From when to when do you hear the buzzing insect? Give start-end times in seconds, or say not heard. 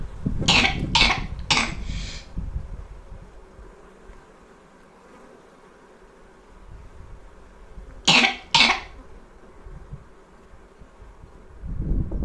0.0-12.2.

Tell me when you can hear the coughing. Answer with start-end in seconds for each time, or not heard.
0.5-2.2, 8.1-8.8.